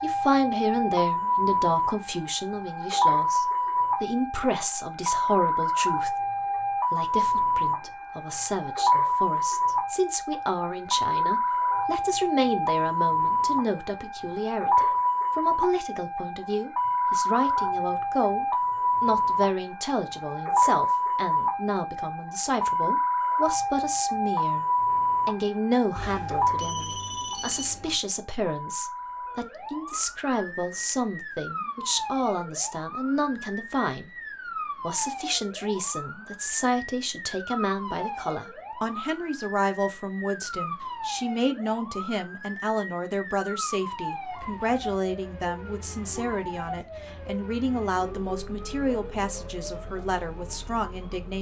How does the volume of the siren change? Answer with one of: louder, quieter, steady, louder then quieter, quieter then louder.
quieter.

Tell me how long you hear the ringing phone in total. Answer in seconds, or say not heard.
2 s.